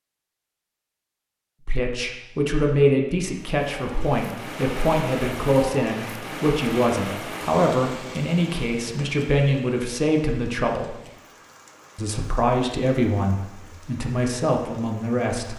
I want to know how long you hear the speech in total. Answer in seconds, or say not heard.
13 s.